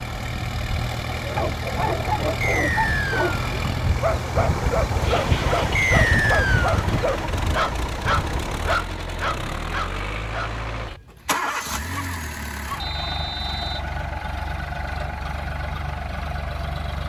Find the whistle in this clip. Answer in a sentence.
You can hear the whistle from 2.4 to 3.4 s, from 5.8 to 6.8 s and from 12.8 to 13.8 s.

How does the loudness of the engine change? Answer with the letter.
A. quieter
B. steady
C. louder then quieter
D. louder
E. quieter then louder
B.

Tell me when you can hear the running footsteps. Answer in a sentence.
The running footsteps can't be heard in this clip.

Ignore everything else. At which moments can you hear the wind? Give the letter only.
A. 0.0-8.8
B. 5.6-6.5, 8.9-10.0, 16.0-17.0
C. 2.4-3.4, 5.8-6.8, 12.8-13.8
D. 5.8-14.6
A.